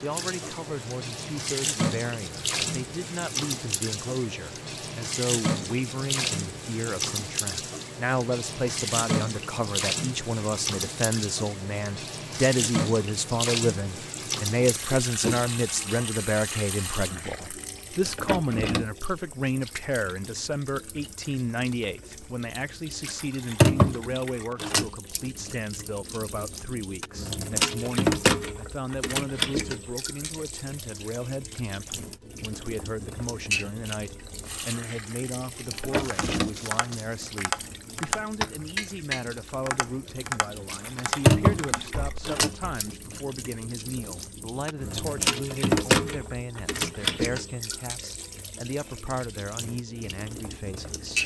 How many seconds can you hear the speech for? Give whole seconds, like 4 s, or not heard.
51 s.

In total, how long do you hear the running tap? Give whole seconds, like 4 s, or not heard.
51 s.